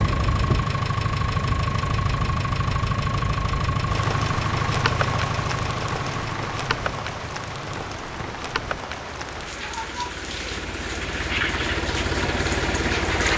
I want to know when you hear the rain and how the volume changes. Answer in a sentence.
You can hear the rain from 0.0 to 13.3 s, at a steady volume.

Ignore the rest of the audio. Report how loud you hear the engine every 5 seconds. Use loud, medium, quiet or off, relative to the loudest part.
loud, medium, loud.